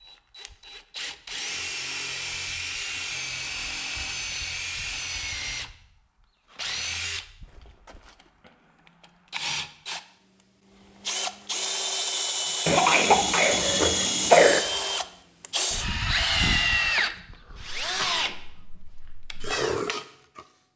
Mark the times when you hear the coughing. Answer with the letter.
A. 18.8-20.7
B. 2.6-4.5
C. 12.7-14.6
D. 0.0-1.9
C.